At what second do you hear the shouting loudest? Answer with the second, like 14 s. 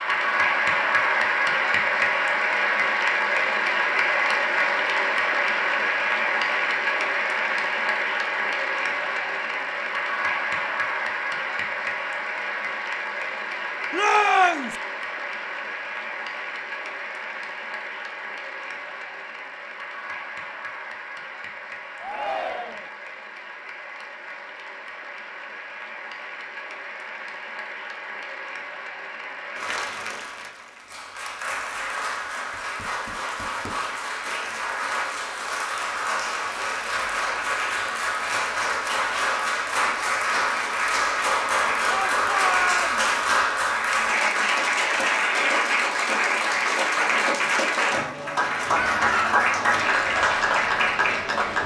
14 s.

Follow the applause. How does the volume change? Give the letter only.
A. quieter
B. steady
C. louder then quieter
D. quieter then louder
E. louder
D.